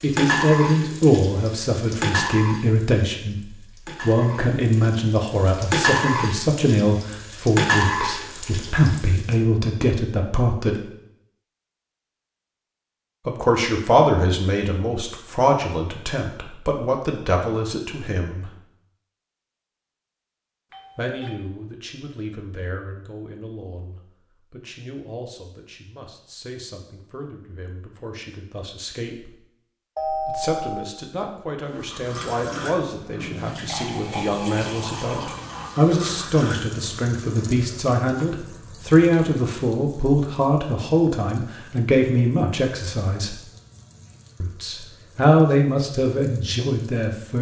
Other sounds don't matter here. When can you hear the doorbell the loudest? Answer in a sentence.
The loudest moment of the doorbell is at 30 seconds.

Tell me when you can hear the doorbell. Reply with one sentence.
The doorbell can be heard from 20.7 to 21.4 s and from 29.9 to 30.9 s.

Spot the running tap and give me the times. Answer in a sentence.
You can hear the running tap from 0.0 to 9.4 s and from 31.7 to 47.3 s.